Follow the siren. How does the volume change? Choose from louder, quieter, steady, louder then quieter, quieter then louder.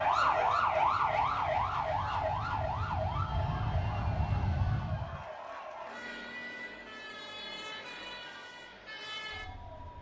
quieter.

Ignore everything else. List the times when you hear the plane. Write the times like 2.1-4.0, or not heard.
0.0-5.2.